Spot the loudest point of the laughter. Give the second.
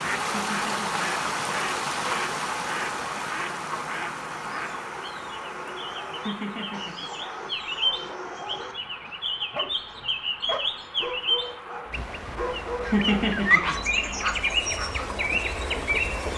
13 s.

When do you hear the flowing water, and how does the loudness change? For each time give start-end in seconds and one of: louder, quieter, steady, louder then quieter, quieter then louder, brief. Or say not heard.
0.0-16.3 quieter then louder.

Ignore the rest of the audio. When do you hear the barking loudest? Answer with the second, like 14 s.
14 s.